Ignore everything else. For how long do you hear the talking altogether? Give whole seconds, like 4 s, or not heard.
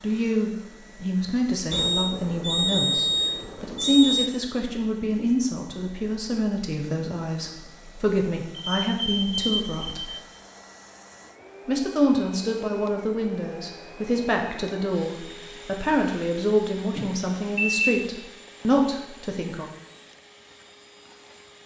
18 s.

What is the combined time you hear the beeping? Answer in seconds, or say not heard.
5 s.